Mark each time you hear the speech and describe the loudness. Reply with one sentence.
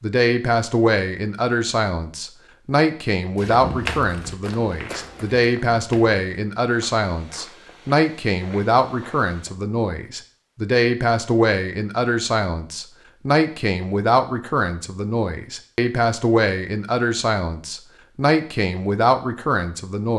The speech can be heard from 0.0 to 20.1 s, at a steady volume.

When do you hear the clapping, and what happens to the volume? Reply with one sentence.
The clapping can't be heard in this clip.